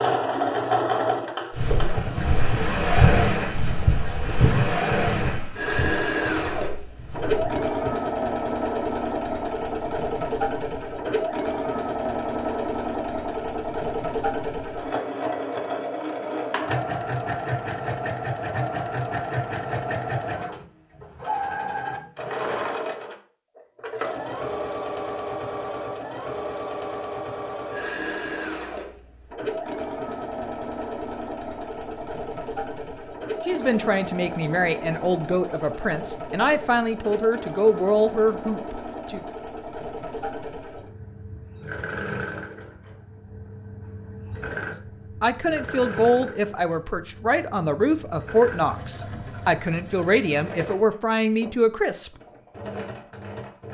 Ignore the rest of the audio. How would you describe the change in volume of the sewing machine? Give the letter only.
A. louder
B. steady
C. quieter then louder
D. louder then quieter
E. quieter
E.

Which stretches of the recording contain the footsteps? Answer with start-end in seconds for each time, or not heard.
1.5-7.9.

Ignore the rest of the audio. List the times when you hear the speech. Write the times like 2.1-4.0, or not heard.
33.5-39.2, 45.2-52.1.